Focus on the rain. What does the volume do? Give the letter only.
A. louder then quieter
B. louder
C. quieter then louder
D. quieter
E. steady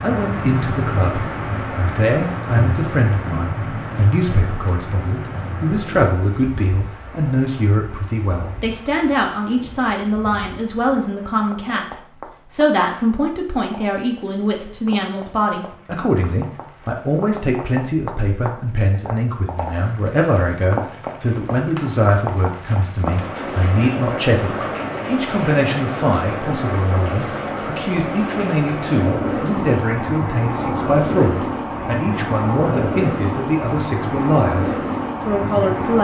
C.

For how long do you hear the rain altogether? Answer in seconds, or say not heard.
36 s.